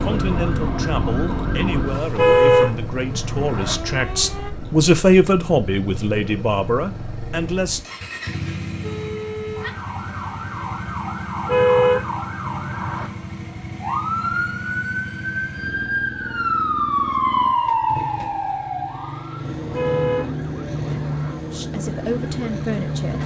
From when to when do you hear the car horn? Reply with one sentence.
You can hear the car horn from 2.1 to 3.8 s, from 11.4 to 13.1 s and from 19.7 to 21.4 s.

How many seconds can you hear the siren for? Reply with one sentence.
The siren can be heard for 19 seconds in total.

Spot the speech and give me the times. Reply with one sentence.
The speech can be heard from 0.0 to 7.8 s and from 21.5 to 23.2 s.